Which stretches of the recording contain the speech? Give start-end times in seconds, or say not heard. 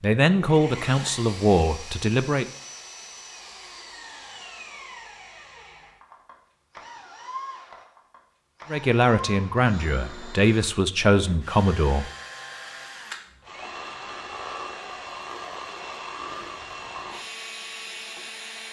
0.0-2.5, 8.7-12.1.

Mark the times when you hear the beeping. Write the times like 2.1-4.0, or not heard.
not heard.